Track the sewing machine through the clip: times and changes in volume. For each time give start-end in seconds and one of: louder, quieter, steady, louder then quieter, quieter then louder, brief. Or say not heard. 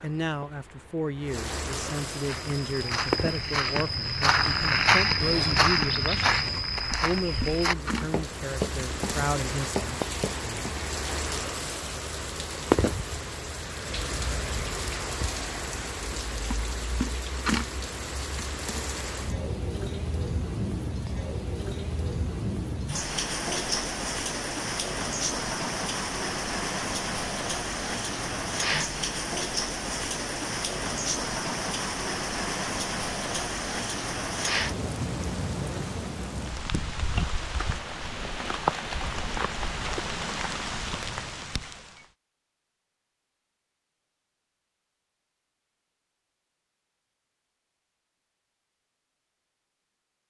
not heard.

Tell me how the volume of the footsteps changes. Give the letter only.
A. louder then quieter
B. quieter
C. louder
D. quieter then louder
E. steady
A.